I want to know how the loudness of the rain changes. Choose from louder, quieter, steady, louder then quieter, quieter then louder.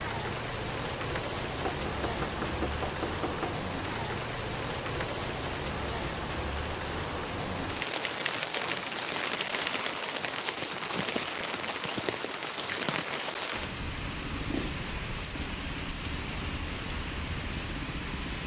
steady.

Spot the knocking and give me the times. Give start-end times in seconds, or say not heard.
1.6-3.6.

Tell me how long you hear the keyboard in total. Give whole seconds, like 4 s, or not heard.
2 s.